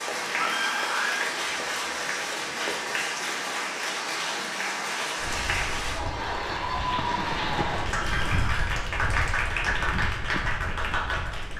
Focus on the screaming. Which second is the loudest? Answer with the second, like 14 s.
1 s.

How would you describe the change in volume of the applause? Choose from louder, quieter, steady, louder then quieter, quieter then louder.
steady.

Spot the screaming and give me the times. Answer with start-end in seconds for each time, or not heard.
0.3-1.3, 7.9-8.7.